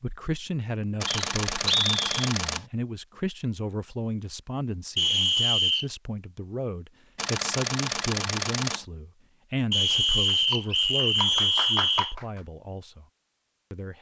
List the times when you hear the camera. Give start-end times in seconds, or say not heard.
1.0-2.6, 7.2-8.8.